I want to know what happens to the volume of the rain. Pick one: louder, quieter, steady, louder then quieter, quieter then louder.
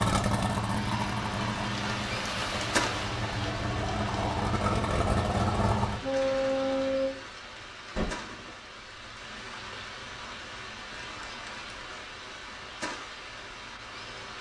quieter.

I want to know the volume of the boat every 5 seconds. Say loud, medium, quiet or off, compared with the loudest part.
loud, loud, off.